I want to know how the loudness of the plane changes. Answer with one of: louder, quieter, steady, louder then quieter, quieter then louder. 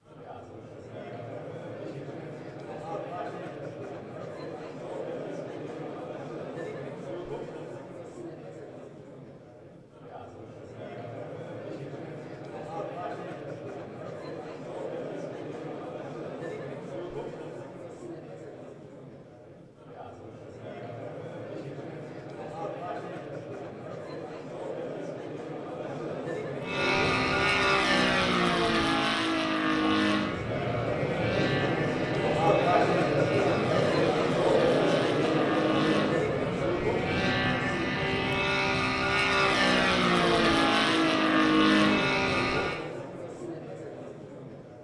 quieter then louder.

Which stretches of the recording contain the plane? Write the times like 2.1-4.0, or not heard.
26.6-42.8.